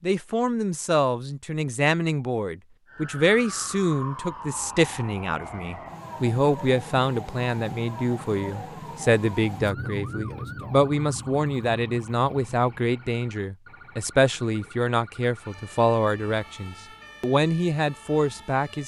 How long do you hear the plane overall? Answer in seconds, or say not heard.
not heard.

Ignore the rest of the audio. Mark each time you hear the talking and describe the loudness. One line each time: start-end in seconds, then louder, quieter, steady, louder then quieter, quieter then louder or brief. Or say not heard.
0.0-18.8 steady.